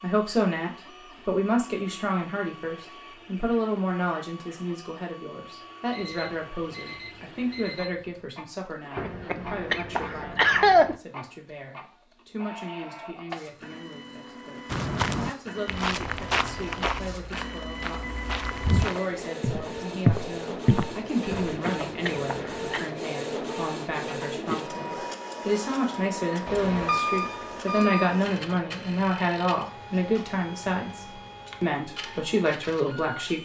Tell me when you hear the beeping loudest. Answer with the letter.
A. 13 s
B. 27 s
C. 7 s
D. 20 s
B.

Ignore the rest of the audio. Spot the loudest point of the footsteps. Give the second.
20 s.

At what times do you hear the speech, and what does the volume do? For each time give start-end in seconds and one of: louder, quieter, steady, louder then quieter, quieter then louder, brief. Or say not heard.
0.0-33.3 quieter then louder.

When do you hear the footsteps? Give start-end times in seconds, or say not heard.
14.7-21.6.